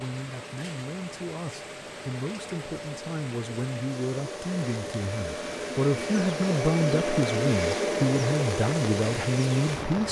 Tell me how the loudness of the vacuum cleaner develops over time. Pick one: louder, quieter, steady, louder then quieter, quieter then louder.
louder.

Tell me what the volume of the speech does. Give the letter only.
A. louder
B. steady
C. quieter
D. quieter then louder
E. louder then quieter
A.